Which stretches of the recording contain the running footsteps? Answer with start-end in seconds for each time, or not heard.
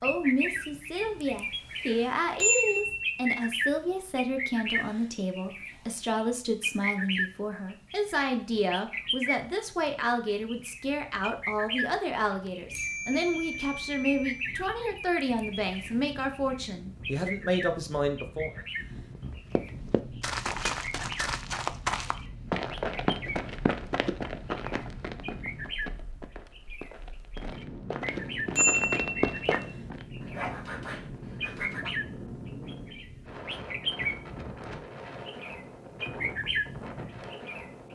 19.1-30.1.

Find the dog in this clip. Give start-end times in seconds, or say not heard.
30.2-31.9.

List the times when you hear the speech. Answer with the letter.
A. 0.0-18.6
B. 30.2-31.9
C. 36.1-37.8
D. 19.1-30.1
A.